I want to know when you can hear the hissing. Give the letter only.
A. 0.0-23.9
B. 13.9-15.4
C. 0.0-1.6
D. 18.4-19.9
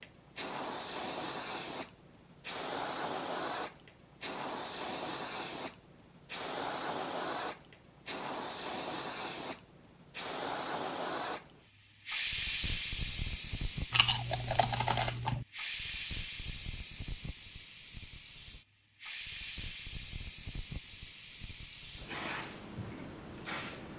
A.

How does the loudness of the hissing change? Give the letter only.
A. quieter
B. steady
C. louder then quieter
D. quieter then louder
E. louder
A.